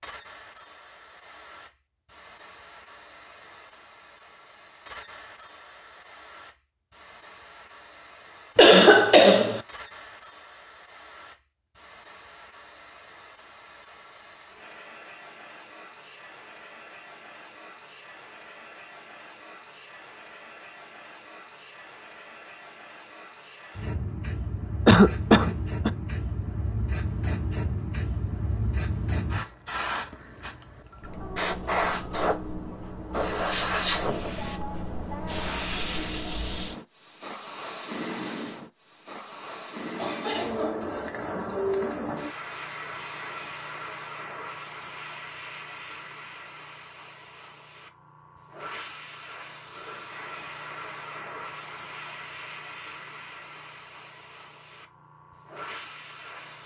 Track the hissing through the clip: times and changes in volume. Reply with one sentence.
The hissing can be heard from 0.0 to 56.6 s, getting louder then quieter.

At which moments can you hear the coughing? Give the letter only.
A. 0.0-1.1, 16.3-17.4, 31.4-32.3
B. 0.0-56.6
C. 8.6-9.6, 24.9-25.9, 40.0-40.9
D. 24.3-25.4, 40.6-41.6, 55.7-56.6
C.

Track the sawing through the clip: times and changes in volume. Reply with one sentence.
The sawing can't be heard in this clip.